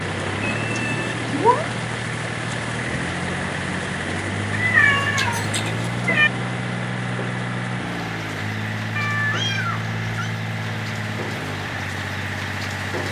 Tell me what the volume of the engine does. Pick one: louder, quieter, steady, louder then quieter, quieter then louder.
steady.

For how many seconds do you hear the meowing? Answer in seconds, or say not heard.
4 s.